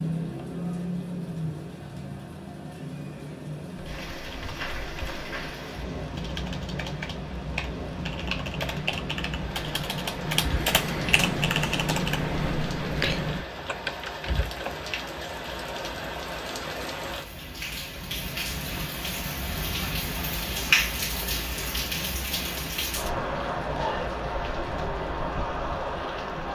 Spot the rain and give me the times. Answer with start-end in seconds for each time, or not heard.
0.0-26.5.